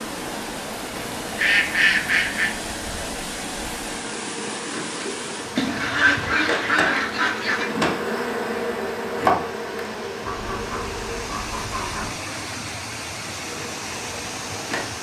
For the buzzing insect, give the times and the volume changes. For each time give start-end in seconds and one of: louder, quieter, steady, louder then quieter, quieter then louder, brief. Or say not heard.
0.0-11.3 louder
13.4-14.9 brief.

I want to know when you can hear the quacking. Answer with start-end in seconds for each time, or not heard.
0.9-2.5, 5.5-7.8, 10.2-12.2.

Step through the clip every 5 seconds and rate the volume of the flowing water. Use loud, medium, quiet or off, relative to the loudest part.
loud, medium, loud.